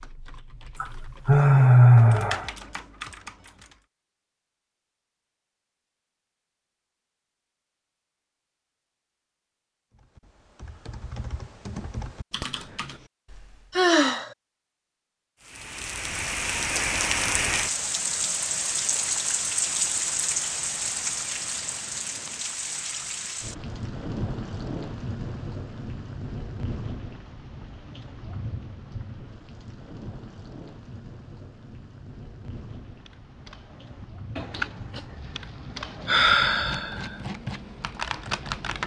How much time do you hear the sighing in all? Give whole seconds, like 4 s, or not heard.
3 s.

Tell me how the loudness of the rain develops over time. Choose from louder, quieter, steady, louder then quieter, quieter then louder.
quieter.